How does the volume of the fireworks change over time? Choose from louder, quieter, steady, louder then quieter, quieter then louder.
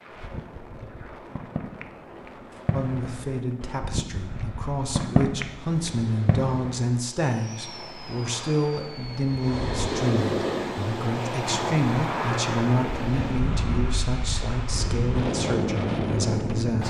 louder then quieter.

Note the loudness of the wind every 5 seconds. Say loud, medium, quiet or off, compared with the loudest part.
quiet, medium, loud, loud.